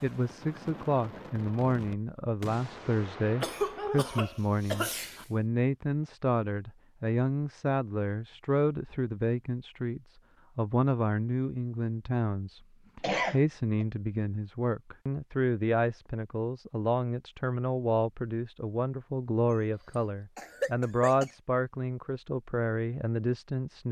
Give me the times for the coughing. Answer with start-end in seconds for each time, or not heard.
3.4-5.2, 13.0-13.8, 20.4-21.3.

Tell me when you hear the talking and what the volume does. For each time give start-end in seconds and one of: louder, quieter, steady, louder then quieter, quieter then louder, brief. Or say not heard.
0.0-23.8 steady.